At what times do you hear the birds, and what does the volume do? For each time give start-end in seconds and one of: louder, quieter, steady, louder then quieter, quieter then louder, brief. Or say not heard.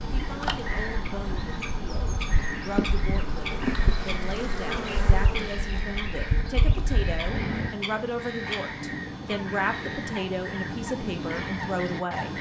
0.0-12.3 steady.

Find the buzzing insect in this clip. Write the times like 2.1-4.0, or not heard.
0.2-7.8.